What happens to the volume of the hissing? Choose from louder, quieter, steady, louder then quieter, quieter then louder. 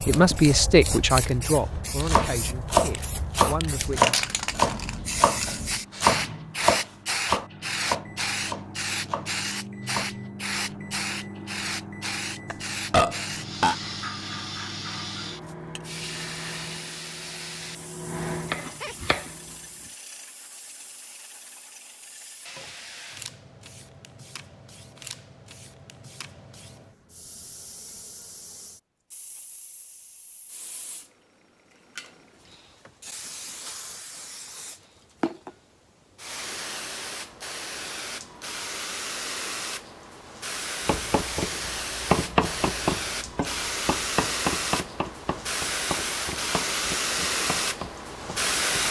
quieter then louder.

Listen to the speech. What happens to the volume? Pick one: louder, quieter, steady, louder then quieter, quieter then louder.
quieter then louder.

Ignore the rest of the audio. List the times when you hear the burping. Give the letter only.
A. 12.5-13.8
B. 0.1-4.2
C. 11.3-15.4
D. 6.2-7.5
A.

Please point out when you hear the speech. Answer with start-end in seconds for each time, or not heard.
0.1-4.2.